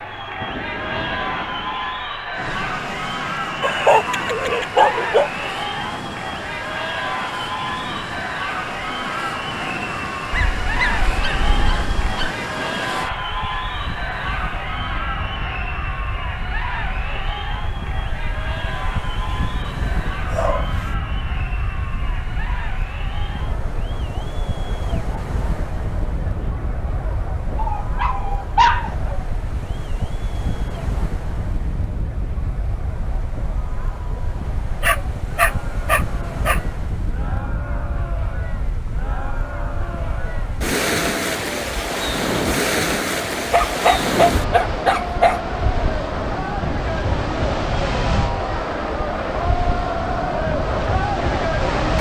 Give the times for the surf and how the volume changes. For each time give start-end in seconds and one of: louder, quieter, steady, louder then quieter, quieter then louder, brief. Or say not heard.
0.0-51.9 louder.